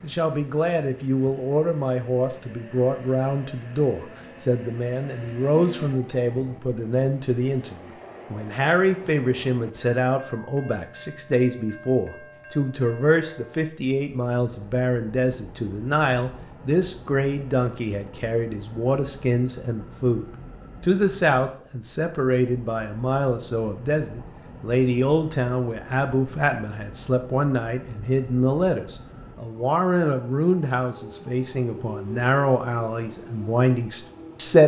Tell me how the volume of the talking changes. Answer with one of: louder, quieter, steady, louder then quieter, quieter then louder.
steady.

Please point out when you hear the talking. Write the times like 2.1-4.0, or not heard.
0.0-34.6.